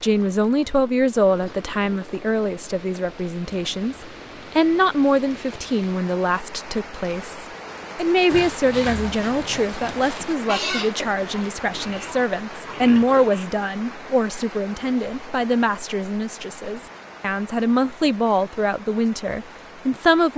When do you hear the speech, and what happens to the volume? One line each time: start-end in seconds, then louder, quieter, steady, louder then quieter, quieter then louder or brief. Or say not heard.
0.0-20.3 steady.